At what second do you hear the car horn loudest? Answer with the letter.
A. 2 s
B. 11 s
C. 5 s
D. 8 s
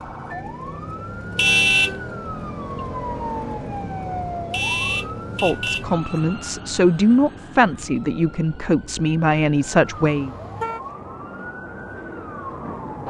A.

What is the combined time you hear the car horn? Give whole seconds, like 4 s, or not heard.
3 s.